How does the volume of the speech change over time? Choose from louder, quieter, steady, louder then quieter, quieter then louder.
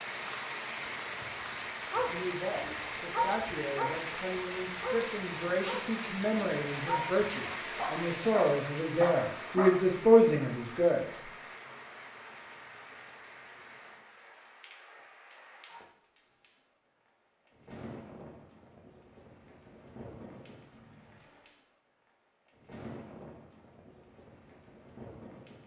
louder.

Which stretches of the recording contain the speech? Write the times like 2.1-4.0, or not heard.
2.0-11.2.